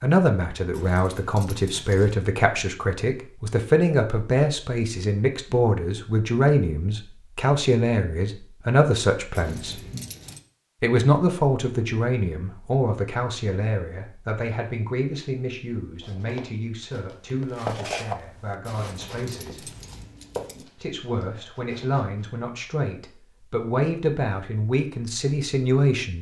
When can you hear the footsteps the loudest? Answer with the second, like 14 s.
18 s.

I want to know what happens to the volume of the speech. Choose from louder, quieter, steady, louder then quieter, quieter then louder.
quieter then louder.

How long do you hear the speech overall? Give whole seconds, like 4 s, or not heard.
24 s.